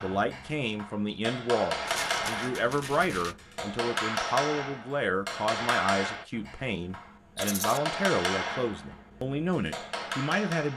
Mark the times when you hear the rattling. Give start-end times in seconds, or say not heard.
1.9-3.4, 7.3-7.8.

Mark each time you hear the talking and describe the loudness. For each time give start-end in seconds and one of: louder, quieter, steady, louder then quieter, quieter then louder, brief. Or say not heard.
0.0-10.7 steady.